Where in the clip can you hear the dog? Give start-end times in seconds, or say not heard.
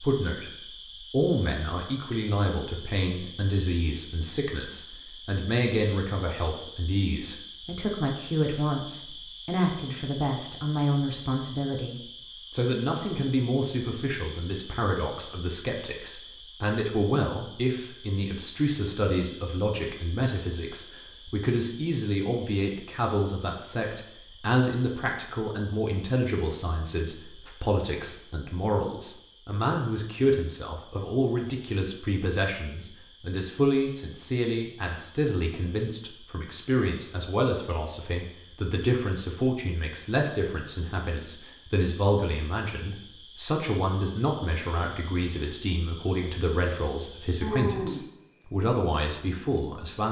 not heard.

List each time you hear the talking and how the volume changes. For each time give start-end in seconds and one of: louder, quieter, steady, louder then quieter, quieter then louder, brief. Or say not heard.
0.0-50.0 steady.